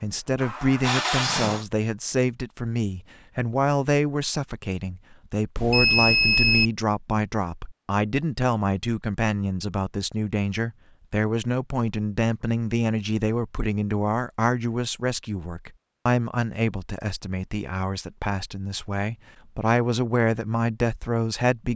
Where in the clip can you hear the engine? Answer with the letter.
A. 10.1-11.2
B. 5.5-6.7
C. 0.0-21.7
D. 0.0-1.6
D.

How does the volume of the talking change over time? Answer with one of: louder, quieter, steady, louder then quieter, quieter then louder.
steady.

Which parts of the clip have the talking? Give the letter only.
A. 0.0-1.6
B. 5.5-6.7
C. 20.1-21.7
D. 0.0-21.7
D.